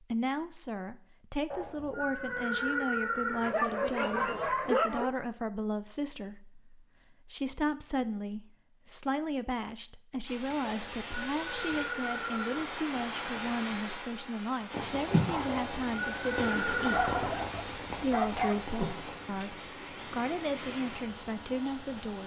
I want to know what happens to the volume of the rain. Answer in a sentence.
The loudness of the rain goes up, then down.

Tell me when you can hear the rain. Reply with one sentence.
The rain can be heard from 10.2 to 22.2 s.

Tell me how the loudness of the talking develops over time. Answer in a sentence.
The volume of the talking stays about the same.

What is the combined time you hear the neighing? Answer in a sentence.
You can hear the neighing for 6 seconds altogether.